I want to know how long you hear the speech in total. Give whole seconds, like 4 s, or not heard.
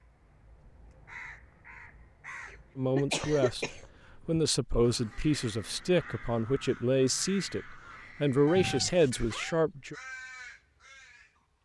7 s.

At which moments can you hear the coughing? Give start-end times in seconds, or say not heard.
2.5-3.9.